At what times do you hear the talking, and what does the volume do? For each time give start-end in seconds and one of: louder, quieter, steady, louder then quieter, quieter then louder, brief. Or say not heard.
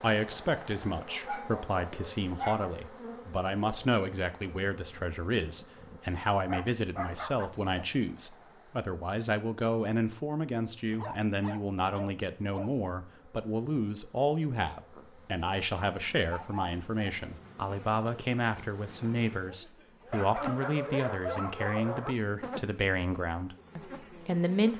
0.0-24.7 steady.